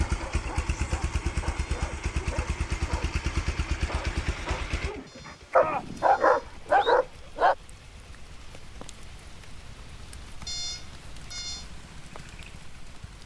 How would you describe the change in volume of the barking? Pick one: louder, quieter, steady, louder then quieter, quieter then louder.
louder.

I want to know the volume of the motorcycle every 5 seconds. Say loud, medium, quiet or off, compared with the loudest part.
loud, quiet, quiet.